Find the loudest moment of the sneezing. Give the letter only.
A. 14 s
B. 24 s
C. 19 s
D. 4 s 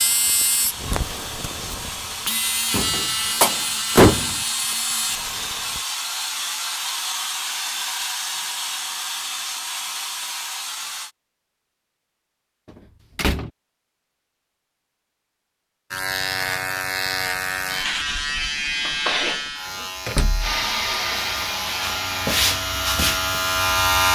C.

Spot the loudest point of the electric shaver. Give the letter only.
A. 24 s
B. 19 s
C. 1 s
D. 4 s
A.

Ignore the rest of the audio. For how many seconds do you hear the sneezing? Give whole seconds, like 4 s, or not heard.
2 s.